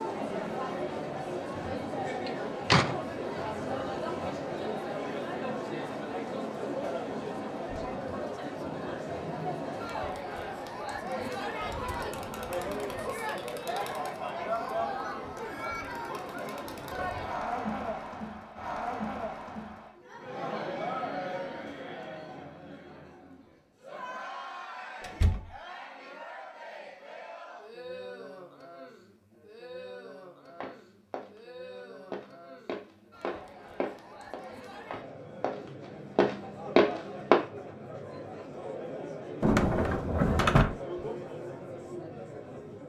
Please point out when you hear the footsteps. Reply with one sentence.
You can hear the footsteps from 30.6 to 37.4 s.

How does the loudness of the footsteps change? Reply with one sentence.
The loudness of the footsteps goes up.